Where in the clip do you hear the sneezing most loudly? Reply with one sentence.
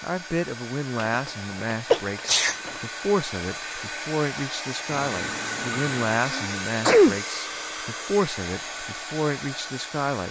The loudest moment of the sneezing is at 7 seconds.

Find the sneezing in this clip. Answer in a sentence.
You can hear the sneezing from 1.9 to 2.5 s and from 6.2 to 7.2 s.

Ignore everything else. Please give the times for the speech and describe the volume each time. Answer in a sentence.
The speech can be heard from 0.0 to 10.2 s, at a steady volume.